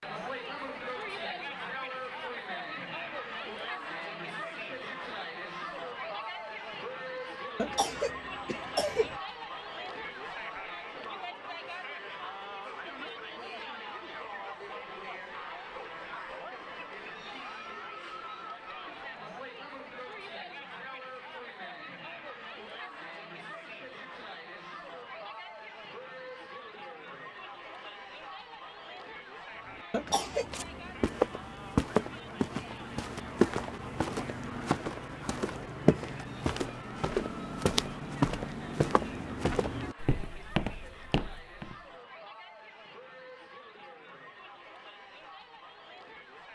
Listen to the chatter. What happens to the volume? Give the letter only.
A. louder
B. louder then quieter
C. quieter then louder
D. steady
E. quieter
E.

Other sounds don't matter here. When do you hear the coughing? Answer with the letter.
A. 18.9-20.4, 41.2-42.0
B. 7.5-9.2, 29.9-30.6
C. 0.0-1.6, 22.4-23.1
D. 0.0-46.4
B.